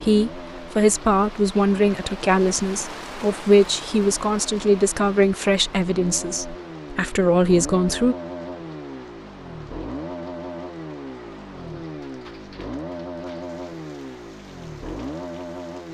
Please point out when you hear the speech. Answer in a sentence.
The speech can be heard from 0.0 to 8.2 s.